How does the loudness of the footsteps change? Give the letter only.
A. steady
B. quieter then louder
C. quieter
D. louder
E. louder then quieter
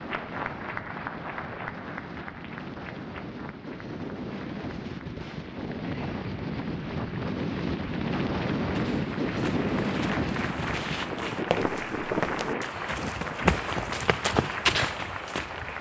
D.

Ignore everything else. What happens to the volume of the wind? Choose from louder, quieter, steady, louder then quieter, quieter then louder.
louder then quieter.